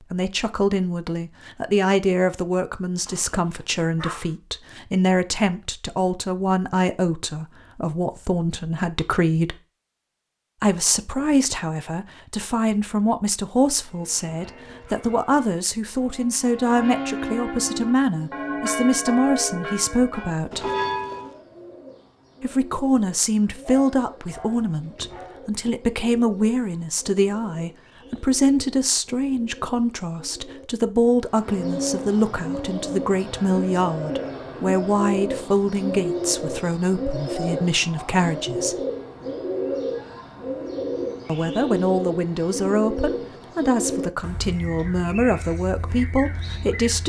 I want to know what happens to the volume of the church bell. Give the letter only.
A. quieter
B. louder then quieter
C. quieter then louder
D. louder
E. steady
D.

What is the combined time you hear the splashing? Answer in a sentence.
You can't hear the splashing here.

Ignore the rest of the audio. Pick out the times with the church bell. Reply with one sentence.
You can hear the church bell from 13.7 to 21.4 s.